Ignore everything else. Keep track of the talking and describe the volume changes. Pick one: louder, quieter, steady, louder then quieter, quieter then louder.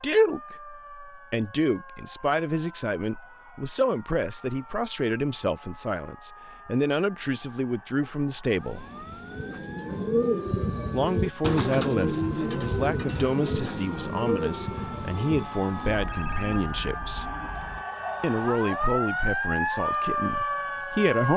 steady.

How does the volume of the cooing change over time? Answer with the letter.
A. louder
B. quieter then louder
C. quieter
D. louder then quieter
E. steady
C.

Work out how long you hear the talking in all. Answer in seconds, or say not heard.
18 s.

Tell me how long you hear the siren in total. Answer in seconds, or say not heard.
21 s.